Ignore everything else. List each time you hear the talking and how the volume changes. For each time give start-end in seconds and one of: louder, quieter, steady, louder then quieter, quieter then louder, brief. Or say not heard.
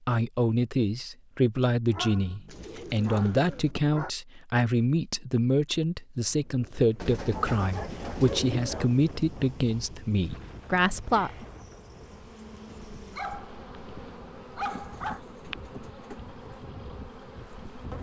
0.1-11.4 steady.